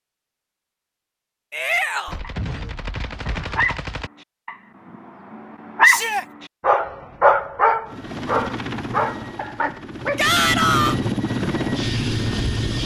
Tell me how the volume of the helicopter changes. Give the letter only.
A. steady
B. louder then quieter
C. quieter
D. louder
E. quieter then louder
E.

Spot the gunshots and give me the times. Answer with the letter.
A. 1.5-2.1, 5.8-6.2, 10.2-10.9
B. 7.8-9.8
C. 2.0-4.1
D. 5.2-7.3
C.